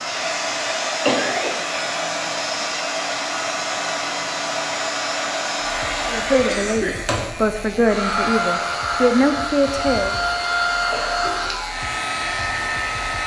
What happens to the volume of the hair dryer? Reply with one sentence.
The loudness of the hair dryer stays about the same.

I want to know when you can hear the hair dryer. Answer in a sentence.
The hair dryer can be heard from 0.0 to 13.2 s.